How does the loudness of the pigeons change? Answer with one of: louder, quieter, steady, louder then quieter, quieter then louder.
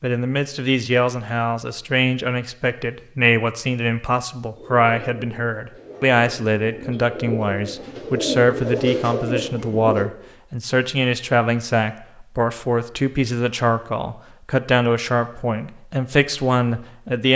louder.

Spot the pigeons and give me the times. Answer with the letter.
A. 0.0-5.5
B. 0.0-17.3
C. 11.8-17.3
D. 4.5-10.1
D.